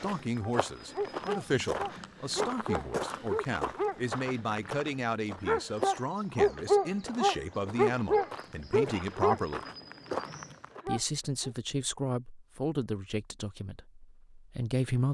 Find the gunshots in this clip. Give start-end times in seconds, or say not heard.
not heard.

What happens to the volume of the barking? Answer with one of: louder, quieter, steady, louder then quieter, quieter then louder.
louder then quieter.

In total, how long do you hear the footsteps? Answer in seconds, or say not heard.
11 s.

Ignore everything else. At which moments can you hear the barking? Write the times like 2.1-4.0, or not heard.
0.4-11.6.